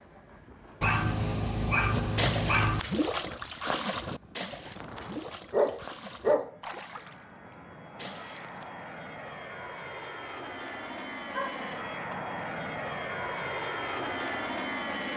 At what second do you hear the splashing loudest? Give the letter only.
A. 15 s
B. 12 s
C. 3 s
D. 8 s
C.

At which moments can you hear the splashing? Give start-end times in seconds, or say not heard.
1.9-8.7.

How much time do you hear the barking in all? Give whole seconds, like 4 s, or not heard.
4 s.